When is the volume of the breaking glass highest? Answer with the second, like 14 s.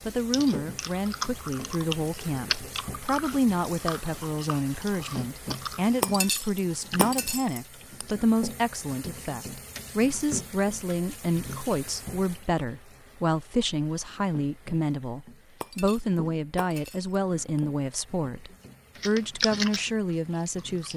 6 s.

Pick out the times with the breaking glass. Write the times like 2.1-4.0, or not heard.
6.0-8.1, 15.6-17.6.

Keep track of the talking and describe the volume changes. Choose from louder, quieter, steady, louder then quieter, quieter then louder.
steady.